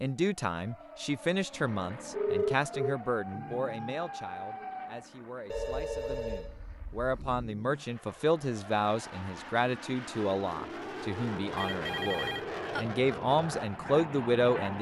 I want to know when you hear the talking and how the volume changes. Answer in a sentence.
The talking can be heard from 0.0 to 14.7 s, getting quieter then louder.